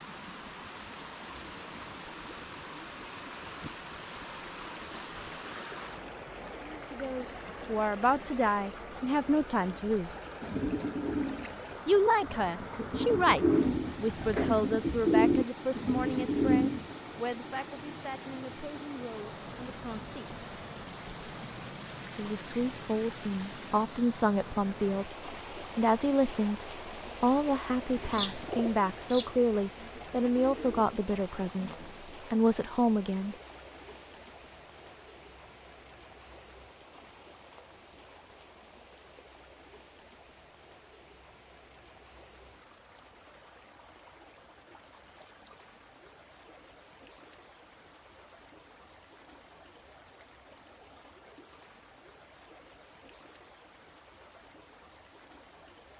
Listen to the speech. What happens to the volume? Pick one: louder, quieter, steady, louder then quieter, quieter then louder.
quieter then louder.